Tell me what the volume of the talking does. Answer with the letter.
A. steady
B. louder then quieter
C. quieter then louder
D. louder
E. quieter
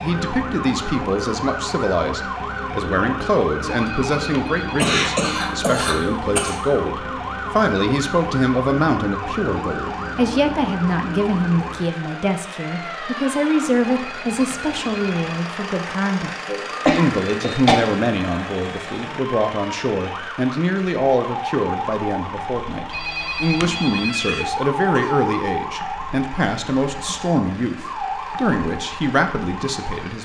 A.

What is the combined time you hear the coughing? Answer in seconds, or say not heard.
4 s.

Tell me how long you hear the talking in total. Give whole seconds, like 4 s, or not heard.
30 s.